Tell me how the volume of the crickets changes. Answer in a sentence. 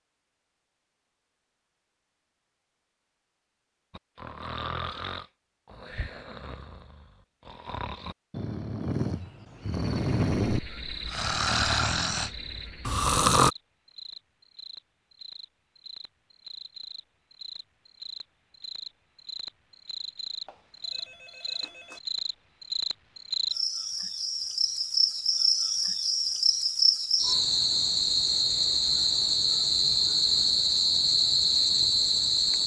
The loudness of the crickets goes up.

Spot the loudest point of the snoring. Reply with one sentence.
The loudest moment of the snoring is at 13 seconds.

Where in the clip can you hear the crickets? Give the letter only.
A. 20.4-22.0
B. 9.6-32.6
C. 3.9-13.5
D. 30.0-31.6
B.